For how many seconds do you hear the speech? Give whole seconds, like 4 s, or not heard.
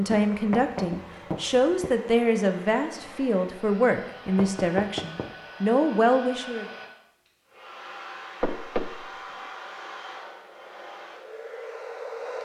7 s.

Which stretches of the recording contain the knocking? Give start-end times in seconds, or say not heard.
0.1-1.9, 4.3-5.3, 8.4-9.1.